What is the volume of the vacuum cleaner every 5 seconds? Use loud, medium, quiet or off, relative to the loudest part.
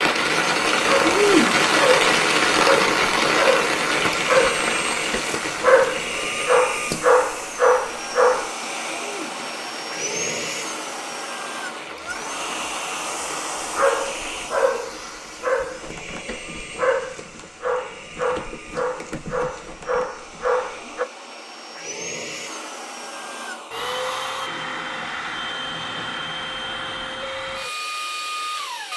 loud, loud, loud, medium, loud, loud.